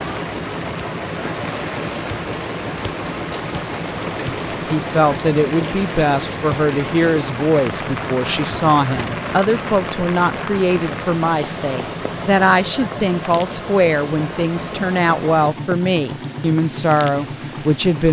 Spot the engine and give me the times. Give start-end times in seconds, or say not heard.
0.0-18.0.